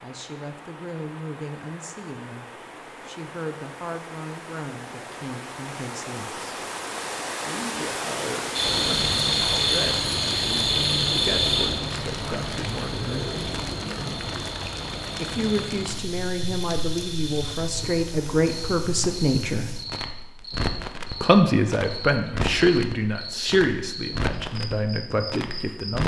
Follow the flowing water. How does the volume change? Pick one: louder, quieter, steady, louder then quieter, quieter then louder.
louder then quieter.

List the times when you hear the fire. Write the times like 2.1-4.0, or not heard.
8.6-26.0.